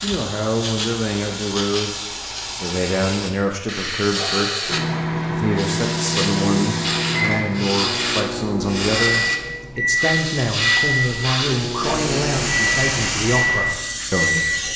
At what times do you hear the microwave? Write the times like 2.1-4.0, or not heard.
4.7-14.7.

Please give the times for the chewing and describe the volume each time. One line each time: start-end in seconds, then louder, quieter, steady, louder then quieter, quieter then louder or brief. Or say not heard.
not heard.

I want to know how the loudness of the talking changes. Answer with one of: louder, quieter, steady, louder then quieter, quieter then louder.
steady.